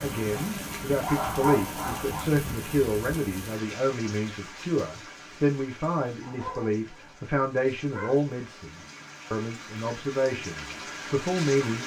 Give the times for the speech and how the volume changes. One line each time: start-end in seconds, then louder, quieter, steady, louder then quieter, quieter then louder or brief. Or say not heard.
0.0-11.8 steady.